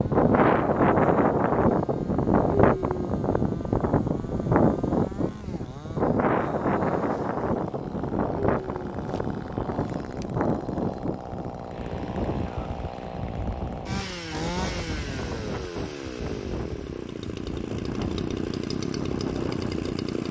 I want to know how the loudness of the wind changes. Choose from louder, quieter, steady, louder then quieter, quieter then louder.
quieter.